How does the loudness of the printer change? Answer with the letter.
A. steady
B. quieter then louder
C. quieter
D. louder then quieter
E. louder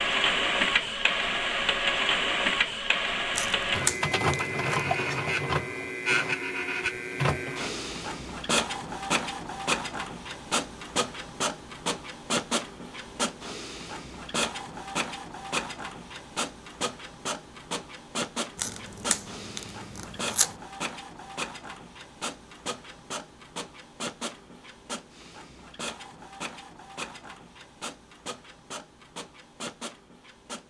C.